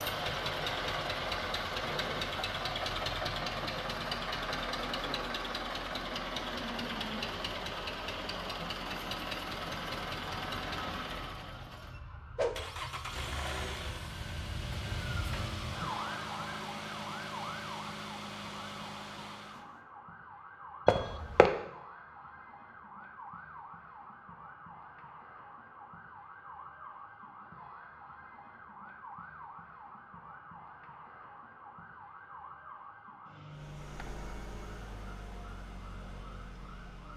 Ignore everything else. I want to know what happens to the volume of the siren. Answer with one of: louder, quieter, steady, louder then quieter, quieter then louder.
quieter.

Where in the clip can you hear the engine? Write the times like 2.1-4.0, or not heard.
0.0-19.8, 33.5-37.1.